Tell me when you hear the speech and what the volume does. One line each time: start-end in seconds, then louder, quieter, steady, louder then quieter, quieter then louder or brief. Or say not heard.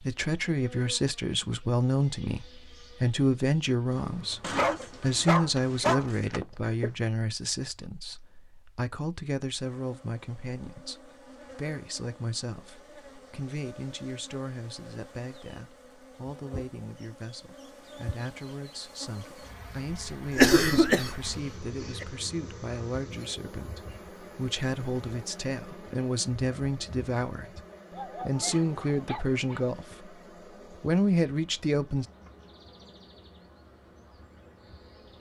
0.0-32.0 quieter then louder.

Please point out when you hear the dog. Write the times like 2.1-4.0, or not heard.
4.4-6.1, 27.9-29.6.